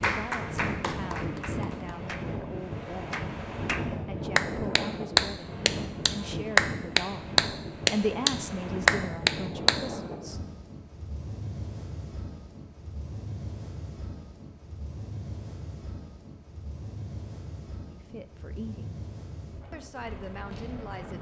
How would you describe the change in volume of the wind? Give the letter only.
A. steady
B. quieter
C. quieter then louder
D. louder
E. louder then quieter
B.